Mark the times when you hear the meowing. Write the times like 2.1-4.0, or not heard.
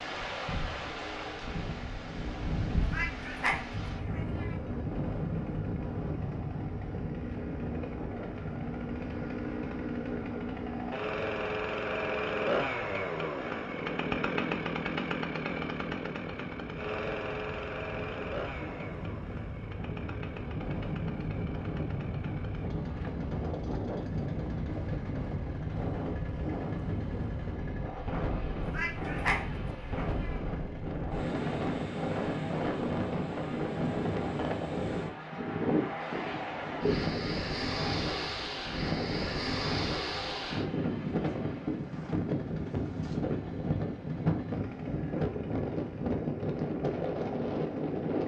2.8-4.5, 28.6-30.4.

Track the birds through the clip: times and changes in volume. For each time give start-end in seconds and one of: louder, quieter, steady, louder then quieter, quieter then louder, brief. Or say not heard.
not heard.